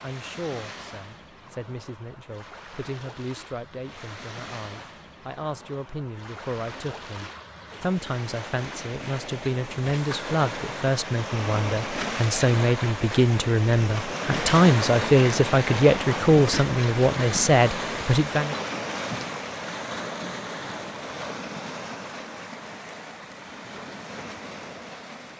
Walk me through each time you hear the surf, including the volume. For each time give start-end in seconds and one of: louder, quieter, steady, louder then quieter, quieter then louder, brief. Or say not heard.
0.0-25.3 louder then quieter.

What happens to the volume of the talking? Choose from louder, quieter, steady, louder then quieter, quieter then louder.
louder.